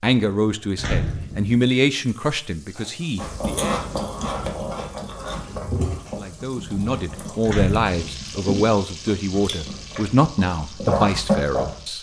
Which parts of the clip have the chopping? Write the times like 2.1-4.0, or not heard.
not heard.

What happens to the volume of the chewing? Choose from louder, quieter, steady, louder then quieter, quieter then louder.
quieter then louder.